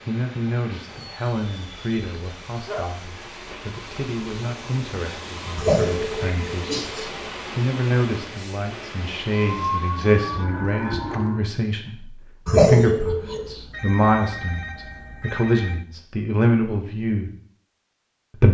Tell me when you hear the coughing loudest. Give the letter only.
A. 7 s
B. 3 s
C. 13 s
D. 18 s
C.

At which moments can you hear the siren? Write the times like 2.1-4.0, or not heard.
9.5-11.4.